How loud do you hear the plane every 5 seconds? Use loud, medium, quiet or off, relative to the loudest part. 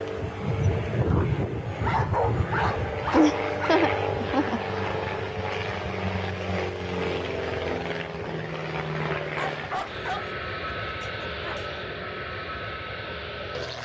loud, loud, medium.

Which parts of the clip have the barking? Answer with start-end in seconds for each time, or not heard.
1.8-3.8, 9.3-11.8.